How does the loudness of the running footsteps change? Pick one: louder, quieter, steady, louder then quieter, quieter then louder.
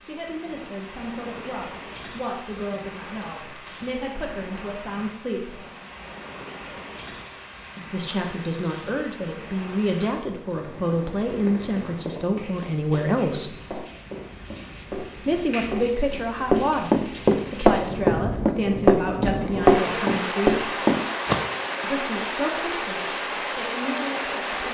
louder.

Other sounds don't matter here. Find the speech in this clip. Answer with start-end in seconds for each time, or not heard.
0.0-5.6, 7.9-13.5, 15.2-20.6, 21.8-24.6.